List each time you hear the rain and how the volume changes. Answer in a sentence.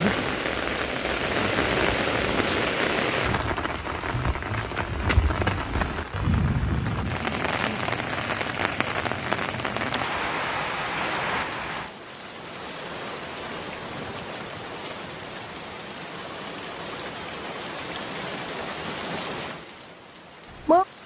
The rain can be heard from 0.0 to 21.0 s, getting quieter.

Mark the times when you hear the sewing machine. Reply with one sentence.
You can hear the sewing machine from 0.0 to 2.7 s.